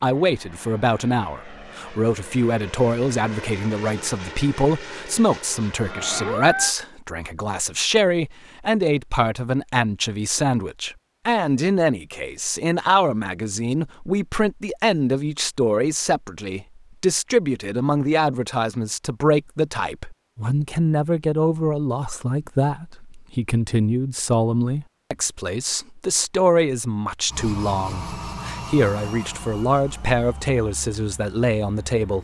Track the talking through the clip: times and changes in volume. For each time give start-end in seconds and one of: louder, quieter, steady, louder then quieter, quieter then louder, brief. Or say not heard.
0.0-32.1 steady.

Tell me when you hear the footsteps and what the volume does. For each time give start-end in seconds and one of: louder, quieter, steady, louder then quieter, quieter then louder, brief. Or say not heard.
not heard.